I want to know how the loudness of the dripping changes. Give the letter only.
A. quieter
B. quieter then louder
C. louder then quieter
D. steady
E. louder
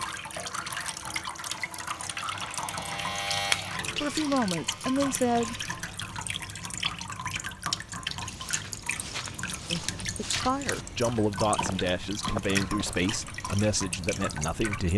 D.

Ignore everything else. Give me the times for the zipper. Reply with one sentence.
The zipper can't be heard in this clip.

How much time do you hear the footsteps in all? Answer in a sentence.
The footsteps can be heard for 5 seconds in total.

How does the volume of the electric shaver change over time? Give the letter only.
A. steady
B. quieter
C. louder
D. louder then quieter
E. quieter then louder
D.